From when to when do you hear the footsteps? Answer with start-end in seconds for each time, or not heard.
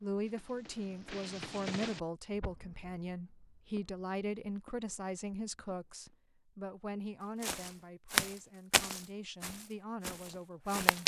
7.4-11.0.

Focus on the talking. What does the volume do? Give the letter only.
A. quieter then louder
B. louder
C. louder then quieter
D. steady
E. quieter
E.